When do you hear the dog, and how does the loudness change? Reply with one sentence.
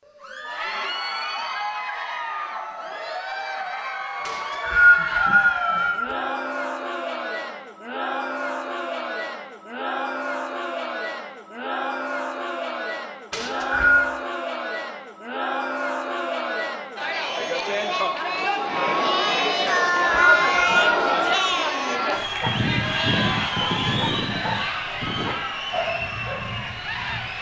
You can hear the dog from 22.4 to 27.3 s, getting quieter.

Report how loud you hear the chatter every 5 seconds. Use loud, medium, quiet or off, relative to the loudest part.
medium, medium, medium, loud, loud, medium.